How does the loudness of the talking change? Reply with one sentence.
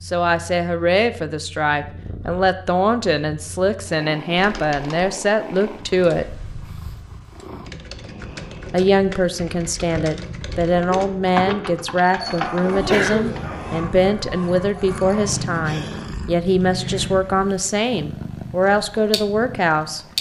The loudness of the talking stays about the same.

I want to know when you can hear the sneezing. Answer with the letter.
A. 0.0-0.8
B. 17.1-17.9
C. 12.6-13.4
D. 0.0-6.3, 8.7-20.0
C.